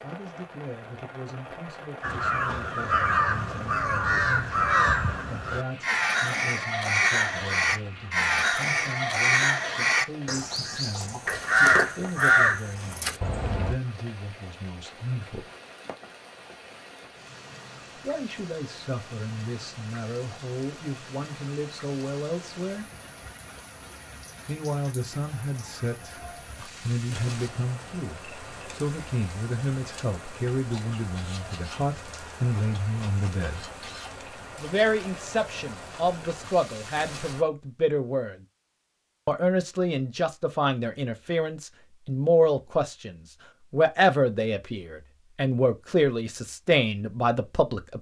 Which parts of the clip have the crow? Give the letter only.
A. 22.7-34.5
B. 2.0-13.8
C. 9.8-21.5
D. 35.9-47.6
B.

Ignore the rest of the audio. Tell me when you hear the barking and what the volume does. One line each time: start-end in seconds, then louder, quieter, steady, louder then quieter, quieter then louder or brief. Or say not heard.
not heard.